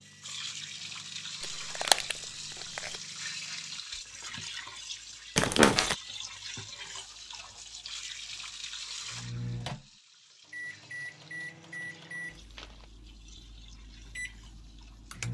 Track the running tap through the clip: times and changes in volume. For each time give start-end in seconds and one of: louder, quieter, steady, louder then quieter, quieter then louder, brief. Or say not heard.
0.0-15.2 quieter.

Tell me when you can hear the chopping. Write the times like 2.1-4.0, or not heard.
not heard.